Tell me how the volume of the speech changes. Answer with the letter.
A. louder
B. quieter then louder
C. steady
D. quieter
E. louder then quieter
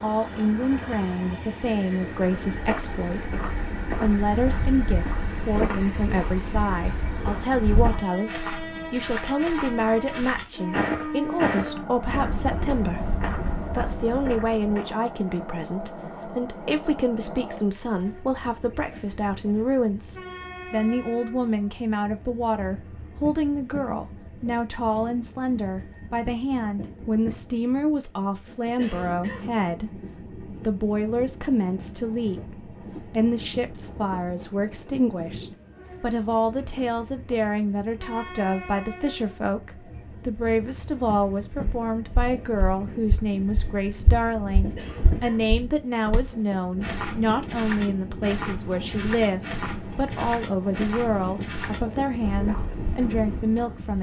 C.